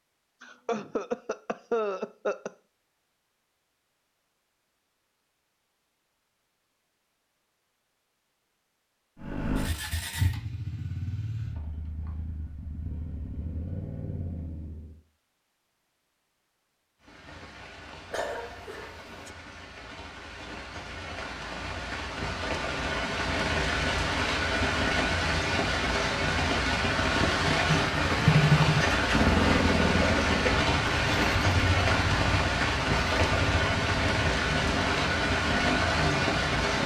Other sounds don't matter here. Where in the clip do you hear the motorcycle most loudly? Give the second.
29 s.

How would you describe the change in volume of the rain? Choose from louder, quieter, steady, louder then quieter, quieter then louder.
louder.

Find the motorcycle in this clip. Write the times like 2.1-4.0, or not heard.
9.2-15.0, 27.6-36.8.